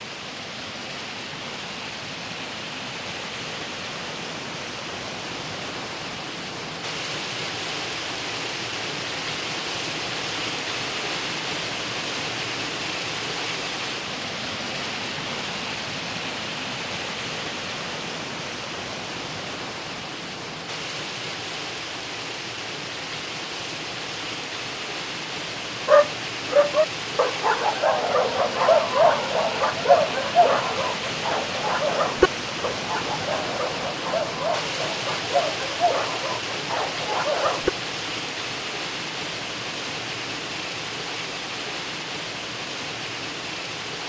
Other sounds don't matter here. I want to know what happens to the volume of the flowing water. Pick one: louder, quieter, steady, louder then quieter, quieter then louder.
steady.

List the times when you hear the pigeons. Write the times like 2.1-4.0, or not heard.
not heard.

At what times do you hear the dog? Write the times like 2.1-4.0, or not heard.
25.9-37.7.